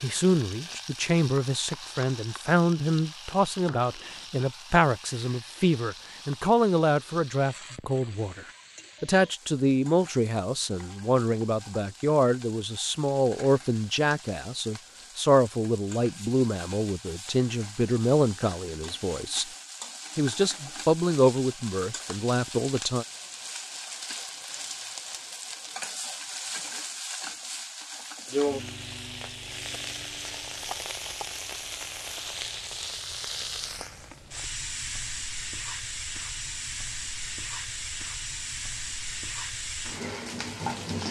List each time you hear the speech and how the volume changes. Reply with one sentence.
The speech can be heard from 0.0 to 19.4 s, at a steady volume; and briefly from 20.1 to 23.1 s.